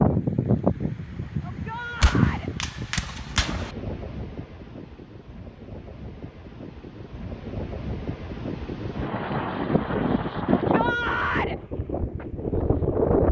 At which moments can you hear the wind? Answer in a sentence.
You can hear the wind from 0.0 to 13.2 s.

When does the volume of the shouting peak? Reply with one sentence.
The loudest moment of the shouting is at 11 seconds.